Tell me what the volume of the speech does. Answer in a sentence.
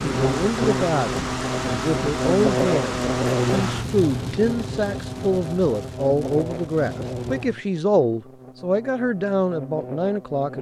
The loudness of the speech stays about the same.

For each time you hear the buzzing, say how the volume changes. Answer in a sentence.
The buzzing can be heard from 0.0 to 10.5 s, getting quieter.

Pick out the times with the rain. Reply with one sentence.
You can hear the rain from 0.0 to 7.5 s.